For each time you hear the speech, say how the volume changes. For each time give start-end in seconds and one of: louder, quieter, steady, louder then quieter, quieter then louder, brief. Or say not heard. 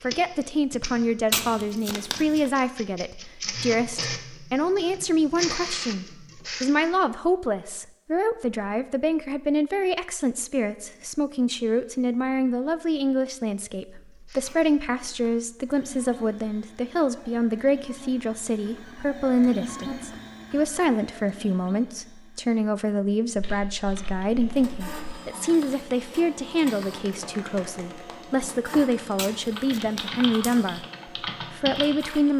0.0-30.9 steady
31.5-32.3 brief.